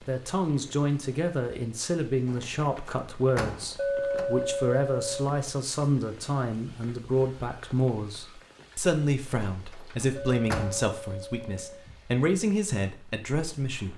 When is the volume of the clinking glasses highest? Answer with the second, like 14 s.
4 s.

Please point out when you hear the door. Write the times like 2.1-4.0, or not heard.
2.2-4.2, 9.5-10.9.